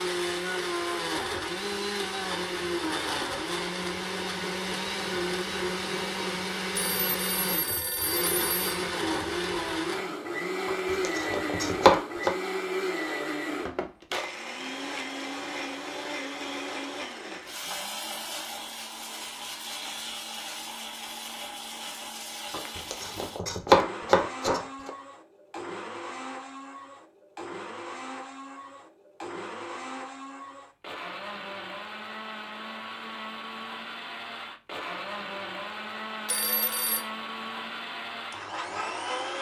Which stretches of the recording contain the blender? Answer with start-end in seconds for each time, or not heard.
0.0-39.3.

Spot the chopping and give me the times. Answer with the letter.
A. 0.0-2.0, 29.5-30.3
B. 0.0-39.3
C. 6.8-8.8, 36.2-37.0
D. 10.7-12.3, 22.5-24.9
D.